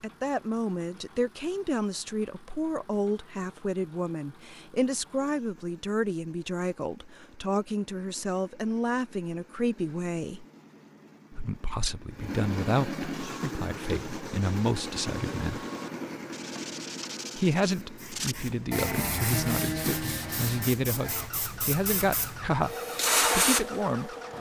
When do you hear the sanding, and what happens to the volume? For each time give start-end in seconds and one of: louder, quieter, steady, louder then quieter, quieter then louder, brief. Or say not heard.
13.2-21.3 louder.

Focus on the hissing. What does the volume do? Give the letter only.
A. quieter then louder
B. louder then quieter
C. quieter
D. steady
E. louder
E.